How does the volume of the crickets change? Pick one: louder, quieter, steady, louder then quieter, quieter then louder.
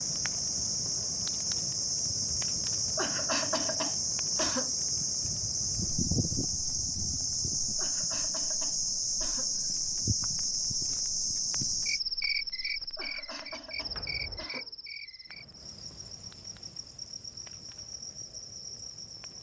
quieter.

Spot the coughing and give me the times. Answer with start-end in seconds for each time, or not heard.
3.0-4.8, 7.8-9.6, 12.9-14.7.